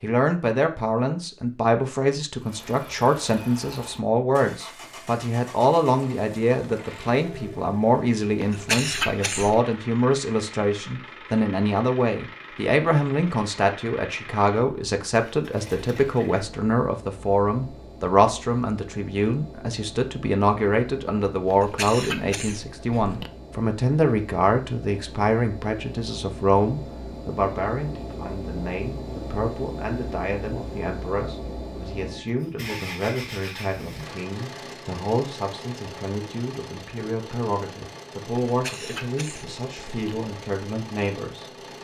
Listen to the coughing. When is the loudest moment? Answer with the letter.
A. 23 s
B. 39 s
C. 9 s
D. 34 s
C.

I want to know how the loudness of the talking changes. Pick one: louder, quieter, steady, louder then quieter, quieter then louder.
quieter.